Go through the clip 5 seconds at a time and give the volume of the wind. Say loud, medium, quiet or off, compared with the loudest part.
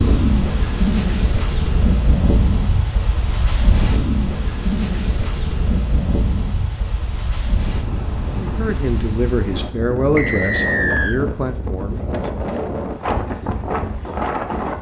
loud, medium, loud.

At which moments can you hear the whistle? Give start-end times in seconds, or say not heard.
10.2-11.2.